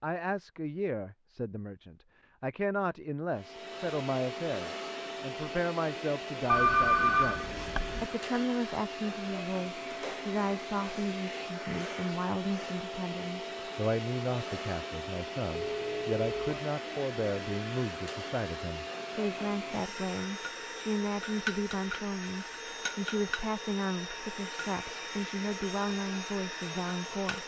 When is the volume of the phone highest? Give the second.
7 s.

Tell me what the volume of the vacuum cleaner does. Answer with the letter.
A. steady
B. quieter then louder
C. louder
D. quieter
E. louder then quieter
A.